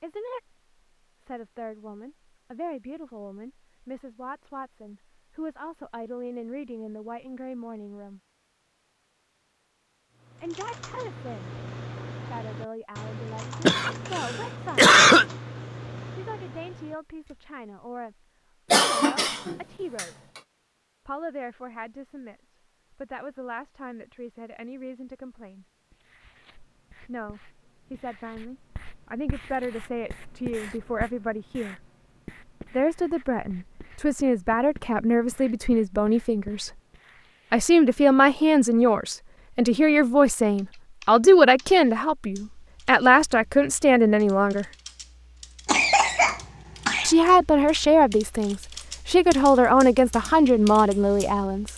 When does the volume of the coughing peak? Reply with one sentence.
The volume of the coughing peaks at 15 seconds.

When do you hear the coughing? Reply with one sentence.
You can hear the coughing from 13.7 to 15.2 s, from 18.7 to 20.1 s and from 45.6 to 47.1 s.